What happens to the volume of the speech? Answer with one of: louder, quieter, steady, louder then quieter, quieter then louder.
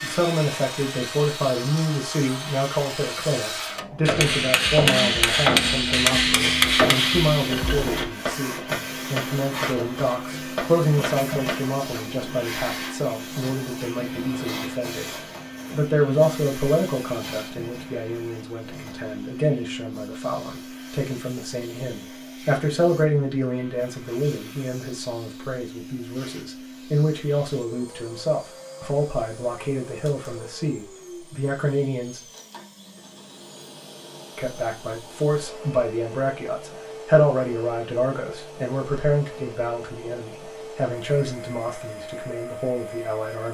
steady.